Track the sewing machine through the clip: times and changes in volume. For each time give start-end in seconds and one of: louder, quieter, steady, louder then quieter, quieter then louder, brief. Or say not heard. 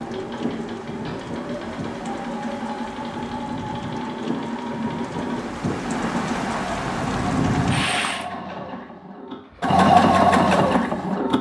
0.0-11.3 louder.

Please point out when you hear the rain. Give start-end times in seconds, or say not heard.
0.0-8.2.